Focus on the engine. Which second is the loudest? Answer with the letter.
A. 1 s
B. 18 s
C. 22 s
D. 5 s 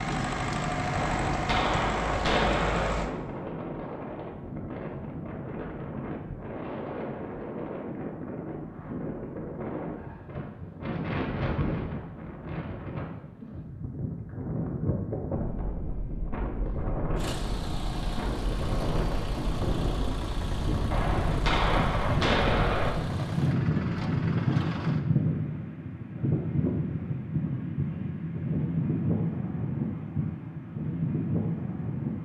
A.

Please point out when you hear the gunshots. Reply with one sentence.
You can hear the gunshots from 0.9 to 3.0 s and from 20.9 to 22.9 s.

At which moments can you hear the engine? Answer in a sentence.
The engine can be heard from 0.0 to 3.1 s and from 17.1 to 25.1 s.